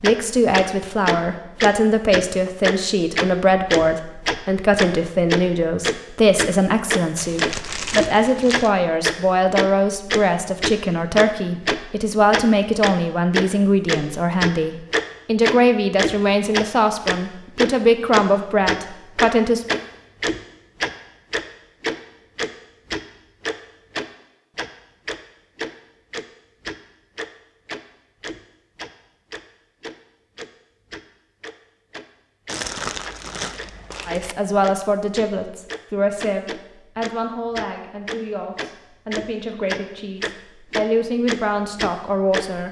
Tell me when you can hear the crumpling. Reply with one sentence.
You can hear the crumpling from 7.2 to 8.7 s and from 32.5 to 34.4 s.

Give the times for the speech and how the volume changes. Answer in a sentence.
The speech can be heard from 0.0 to 19.6 s, at a steady volume; and from 34.0 to 42.6 s, getting quieter then louder.